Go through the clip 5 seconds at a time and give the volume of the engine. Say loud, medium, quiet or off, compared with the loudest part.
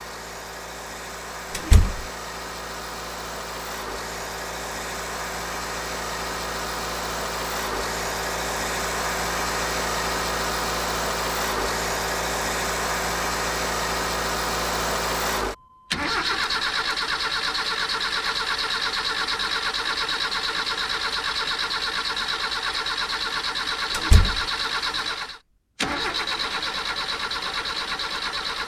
medium, loud, loud, loud, loud, loud.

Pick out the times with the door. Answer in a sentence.
You can hear the door from 1.5 to 2.0 s and from 23.9 to 24.4 s.